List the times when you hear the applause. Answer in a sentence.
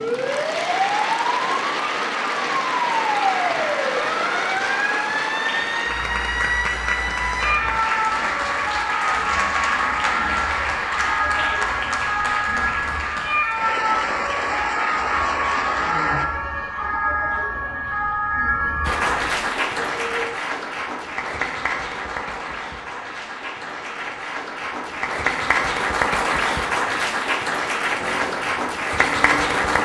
You can hear the applause from 0.0 to 16.2 s and from 18.8 to 29.8 s.